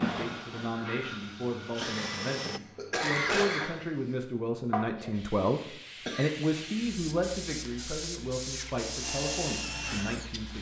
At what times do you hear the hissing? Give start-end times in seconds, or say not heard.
0.0-10.5.